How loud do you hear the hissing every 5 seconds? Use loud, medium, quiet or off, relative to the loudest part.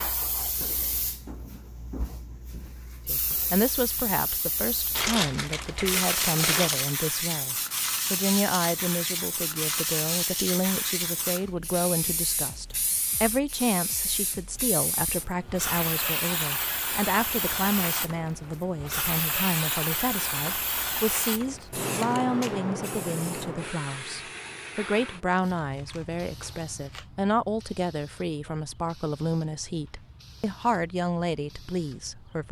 medium, loud, loud, loud, loud, quiet, quiet.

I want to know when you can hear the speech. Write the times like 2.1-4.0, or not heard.
3.0-32.4.